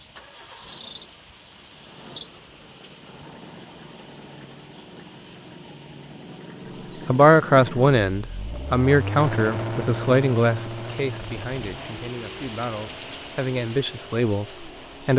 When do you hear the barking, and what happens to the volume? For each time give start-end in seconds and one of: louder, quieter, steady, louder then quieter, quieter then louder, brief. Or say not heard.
not heard.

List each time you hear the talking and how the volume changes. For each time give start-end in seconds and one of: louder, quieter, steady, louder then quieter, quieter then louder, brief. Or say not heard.
7.0-15.1 quieter then louder.